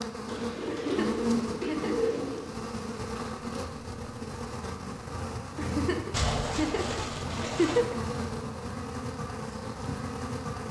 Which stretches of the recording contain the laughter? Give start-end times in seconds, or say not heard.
0.7-2.1, 5.5-8.0.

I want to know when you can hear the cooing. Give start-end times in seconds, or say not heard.
0.2-2.5, 6.1-7.8.